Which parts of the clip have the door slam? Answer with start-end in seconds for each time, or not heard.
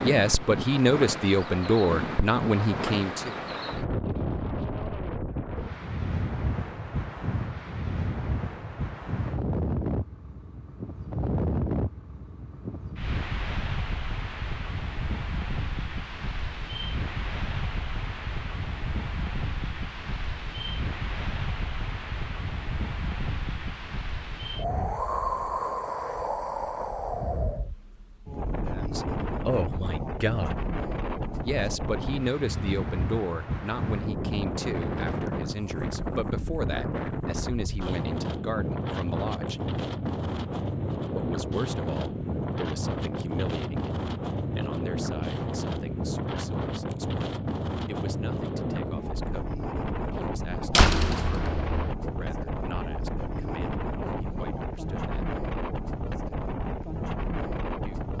50.7-52.0.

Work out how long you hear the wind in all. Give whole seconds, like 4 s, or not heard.
58 s.